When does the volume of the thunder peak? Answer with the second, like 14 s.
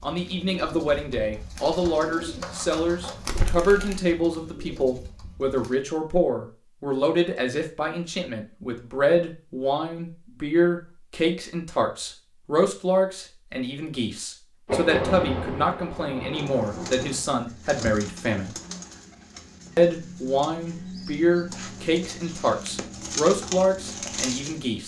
15 s.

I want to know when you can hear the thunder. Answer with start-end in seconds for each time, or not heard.
14.7-17.2.